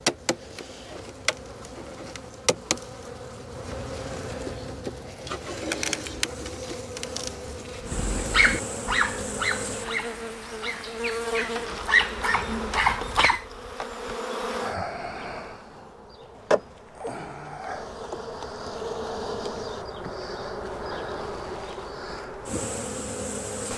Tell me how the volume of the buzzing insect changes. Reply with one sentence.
The volume of the buzzing insect stays about the same.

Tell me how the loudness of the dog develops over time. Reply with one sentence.
The volume of the dog goes down, then up.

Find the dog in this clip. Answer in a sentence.
The dog can be heard from 7.8 to 13.4 s.